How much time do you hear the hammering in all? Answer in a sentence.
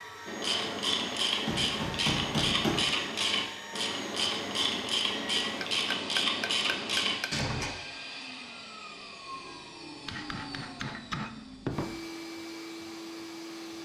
You can hear the hammering for 5 seconds altogether.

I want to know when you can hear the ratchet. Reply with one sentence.
You can hear the ratchet from 0.2 to 7.7 s.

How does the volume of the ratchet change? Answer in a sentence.
The loudness of the ratchet stays about the same.